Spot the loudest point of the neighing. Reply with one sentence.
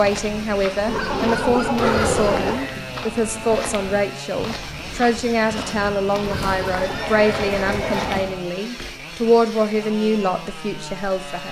The volume of the neighing peaks at 2 seconds.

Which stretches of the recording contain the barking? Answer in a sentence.
The barking can be heard from 0.8 to 2.6 s and from 6.2 to 7.9 s.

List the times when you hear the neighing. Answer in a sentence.
You can hear the neighing from 1.8 to 2.8 s and from 6.2 to 8.2 s.